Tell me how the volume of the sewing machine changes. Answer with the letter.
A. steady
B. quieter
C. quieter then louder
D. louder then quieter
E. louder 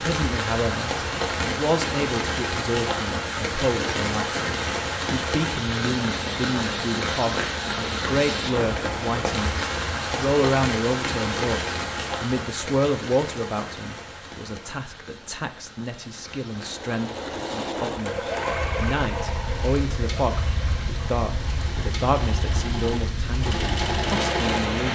C.